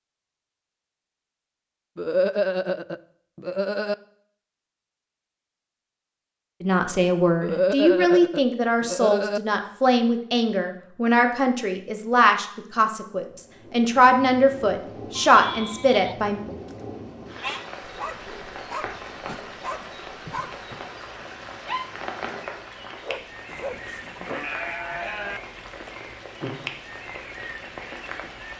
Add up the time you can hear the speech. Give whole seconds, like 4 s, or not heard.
10 s.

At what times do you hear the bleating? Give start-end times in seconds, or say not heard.
1.9-4.0, 7.4-9.4, 15.2-17.6, 23.4-25.4.